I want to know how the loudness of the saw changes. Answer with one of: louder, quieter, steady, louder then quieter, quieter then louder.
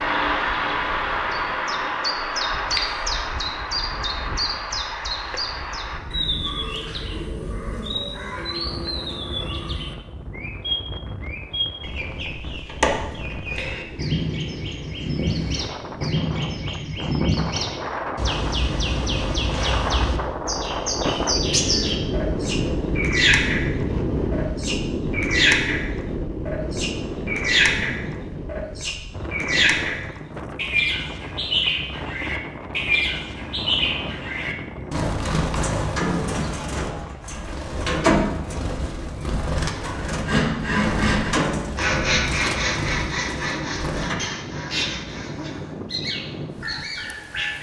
quieter.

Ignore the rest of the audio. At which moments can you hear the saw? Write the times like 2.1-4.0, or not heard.
40.0-45.6.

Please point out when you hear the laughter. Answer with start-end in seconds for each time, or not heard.
not heard.